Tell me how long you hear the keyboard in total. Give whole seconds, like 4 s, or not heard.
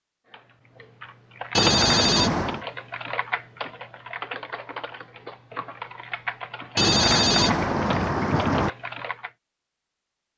9 s.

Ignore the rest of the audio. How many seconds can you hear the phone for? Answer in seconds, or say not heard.
3 s.